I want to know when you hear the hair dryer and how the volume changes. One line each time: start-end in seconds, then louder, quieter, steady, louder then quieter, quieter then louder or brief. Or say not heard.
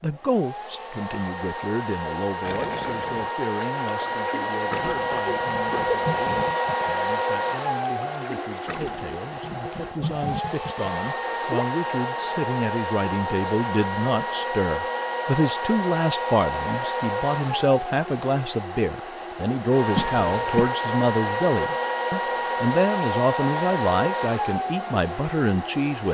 0.0-26.0 steady.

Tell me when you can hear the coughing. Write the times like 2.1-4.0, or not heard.
5.1-6.0, 19.9-20.7.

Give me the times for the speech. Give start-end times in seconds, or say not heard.
0.0-26.0.